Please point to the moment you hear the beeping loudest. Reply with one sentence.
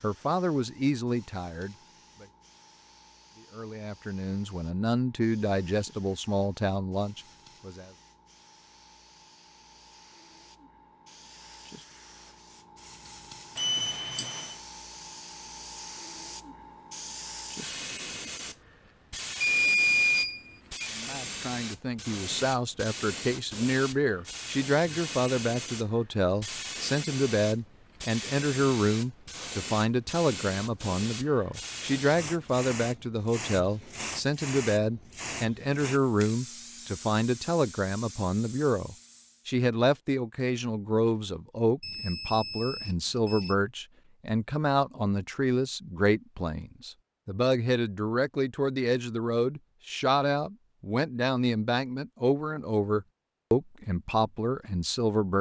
The volume of the beeping peaks at 20 seconds.